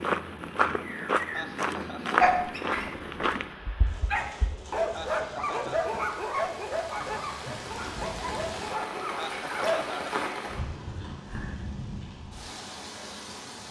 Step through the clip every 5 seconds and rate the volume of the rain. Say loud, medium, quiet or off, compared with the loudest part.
medium, loud, loud.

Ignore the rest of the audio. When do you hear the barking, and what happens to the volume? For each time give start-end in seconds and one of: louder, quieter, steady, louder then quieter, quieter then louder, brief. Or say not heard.
2.2-9.8 louder then quieter.